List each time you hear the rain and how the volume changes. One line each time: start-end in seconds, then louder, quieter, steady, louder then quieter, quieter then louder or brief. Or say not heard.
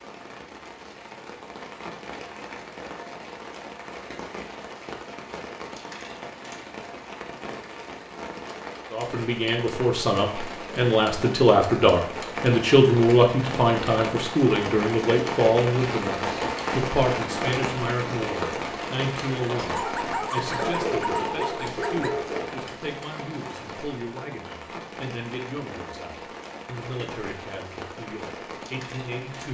0.0-29.5 louder then quieter.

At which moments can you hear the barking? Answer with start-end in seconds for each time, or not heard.
19.6-22.6.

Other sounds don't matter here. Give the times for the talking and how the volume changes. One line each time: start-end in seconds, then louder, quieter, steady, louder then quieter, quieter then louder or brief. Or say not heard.
8.9-29.5 quieter.